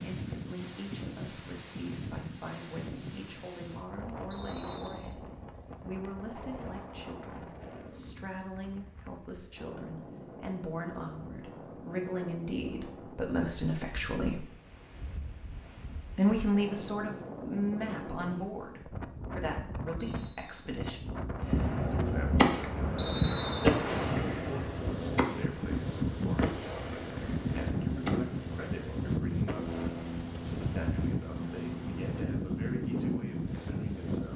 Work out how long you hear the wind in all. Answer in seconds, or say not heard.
34 s.